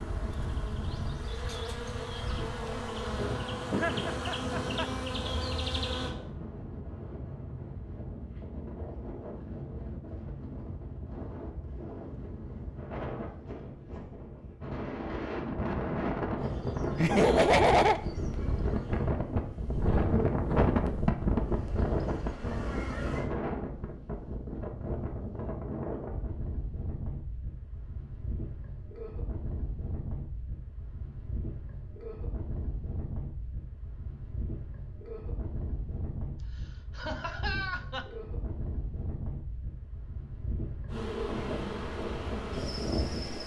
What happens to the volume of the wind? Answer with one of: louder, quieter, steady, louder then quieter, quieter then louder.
louder then quieter.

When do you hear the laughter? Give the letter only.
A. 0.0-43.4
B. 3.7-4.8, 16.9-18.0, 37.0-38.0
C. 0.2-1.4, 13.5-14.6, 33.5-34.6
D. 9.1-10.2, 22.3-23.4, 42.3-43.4
B.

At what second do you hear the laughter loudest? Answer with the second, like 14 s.
18 s.